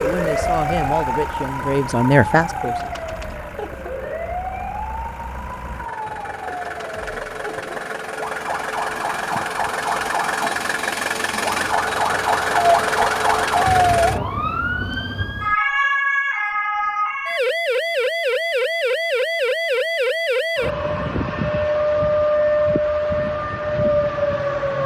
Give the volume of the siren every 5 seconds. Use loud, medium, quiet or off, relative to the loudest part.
medium, medium, loud, loud, loud.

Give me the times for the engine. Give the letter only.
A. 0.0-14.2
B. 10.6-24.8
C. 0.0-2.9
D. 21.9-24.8
A.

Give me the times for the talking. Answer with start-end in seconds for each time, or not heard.
0.0-2.9.